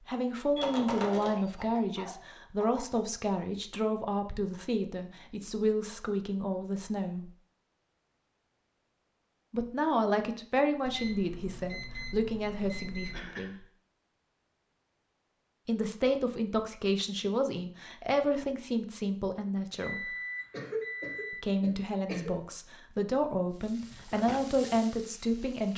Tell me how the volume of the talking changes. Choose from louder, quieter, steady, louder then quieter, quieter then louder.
steady.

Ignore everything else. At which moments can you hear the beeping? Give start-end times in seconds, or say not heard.
0.6-1.4, 10.8-13.3, 19.8-21.4.